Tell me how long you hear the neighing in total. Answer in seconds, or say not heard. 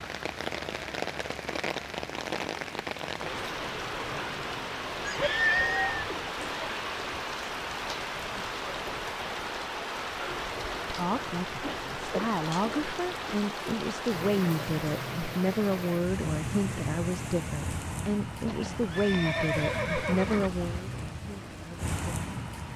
3 s.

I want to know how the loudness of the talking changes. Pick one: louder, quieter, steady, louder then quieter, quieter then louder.
steady.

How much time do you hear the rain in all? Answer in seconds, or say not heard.
23 s.